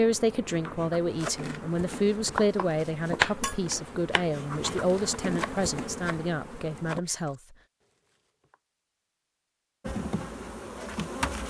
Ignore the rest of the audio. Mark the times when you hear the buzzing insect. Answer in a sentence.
The buzzing insect can be heard from 0.0 to 7.0 s and from 9.8 to 11.4 s.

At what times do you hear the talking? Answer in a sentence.
The talking can be heard from 0.0 to 7.4 s.